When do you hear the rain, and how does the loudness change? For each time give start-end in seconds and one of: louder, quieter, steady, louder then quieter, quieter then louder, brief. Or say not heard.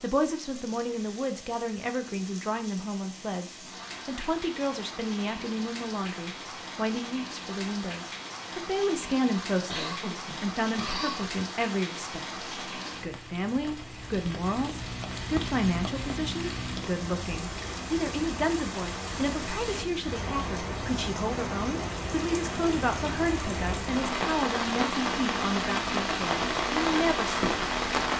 0.0-28.1 louder.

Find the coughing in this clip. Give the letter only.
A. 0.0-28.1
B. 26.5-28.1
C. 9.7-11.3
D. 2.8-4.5
C.